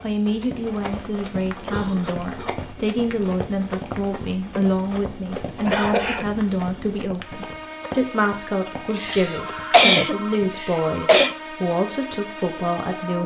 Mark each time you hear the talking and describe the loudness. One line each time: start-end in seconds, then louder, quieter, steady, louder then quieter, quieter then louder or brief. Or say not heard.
0.0-13.2 steady.